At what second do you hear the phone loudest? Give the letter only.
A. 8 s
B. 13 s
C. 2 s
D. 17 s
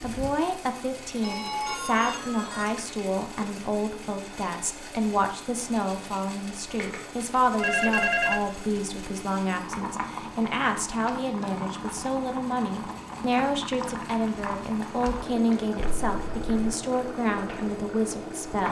A.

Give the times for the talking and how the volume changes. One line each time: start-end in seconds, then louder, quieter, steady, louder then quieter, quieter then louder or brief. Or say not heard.
0.0-18.6 steady.